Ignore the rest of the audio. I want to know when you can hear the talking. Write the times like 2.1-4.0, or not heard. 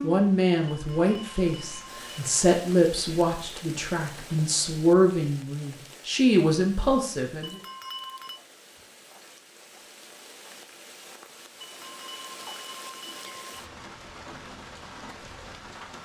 0.0-7.6.